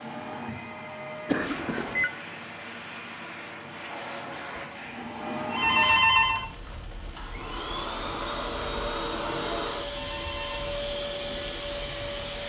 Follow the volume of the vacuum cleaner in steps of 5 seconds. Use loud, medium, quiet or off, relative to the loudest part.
medium, loud, loud.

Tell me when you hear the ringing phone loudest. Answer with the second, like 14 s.
6 s.